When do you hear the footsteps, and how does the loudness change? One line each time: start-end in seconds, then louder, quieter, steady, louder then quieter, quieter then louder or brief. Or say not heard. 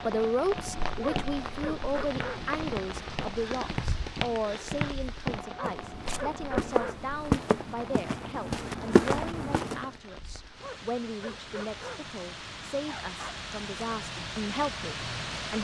0.6-9.8 louder.